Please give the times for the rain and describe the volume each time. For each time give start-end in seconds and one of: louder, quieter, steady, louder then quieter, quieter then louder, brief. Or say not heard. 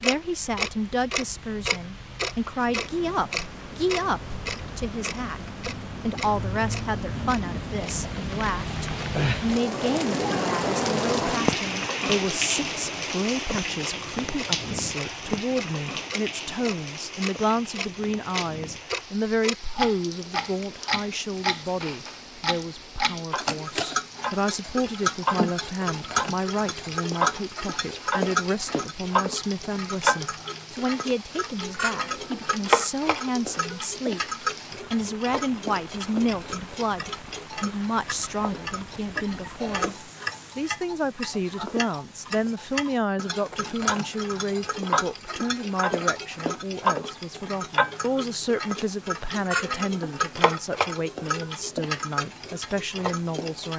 0.0-40.7 louder then quieter.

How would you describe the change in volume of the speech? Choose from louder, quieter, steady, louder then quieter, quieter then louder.
steady.